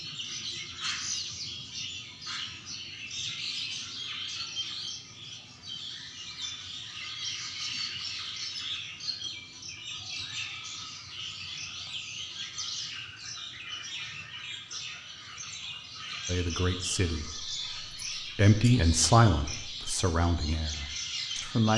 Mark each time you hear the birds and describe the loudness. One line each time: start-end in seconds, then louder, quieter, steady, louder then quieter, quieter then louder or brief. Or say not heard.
0.0-21.7 steady.